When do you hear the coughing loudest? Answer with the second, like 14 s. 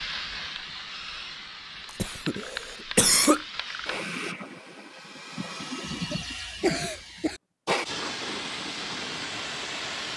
3 s.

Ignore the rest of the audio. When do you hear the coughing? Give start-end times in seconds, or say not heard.
1.9-3.4, 5.9-7.4.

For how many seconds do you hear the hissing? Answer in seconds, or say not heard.
10 s.